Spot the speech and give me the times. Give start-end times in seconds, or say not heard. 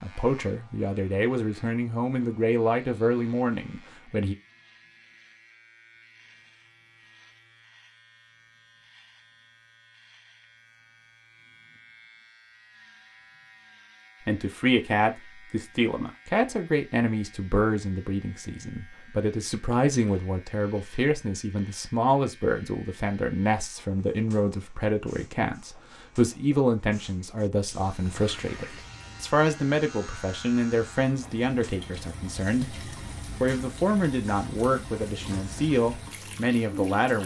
0.0-4.3, 14.2-37.2.